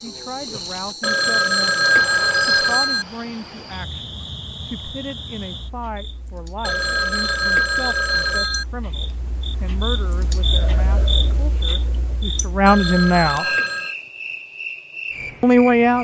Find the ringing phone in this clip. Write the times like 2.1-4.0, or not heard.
1.0-3.0, 6.6-8.7, 12.7-13.9.